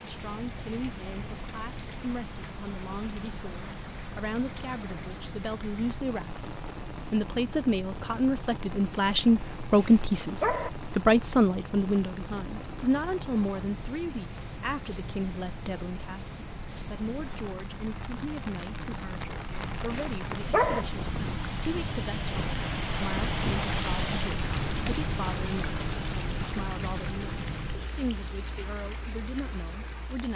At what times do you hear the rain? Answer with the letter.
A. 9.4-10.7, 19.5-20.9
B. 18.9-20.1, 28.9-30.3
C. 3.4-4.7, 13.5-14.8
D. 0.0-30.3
D.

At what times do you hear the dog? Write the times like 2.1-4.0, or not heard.
9.4-10.7, 19.5-20.9.